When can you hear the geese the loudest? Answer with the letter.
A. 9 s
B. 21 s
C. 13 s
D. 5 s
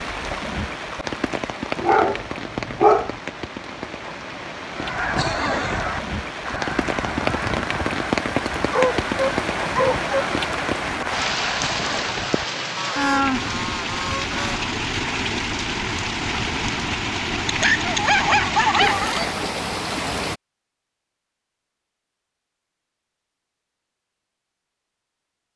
D.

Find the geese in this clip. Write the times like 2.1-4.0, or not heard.
4.8-14.7.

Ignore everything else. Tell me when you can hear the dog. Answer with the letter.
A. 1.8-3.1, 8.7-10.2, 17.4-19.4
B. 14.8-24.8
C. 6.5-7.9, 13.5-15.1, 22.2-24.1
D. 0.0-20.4
A.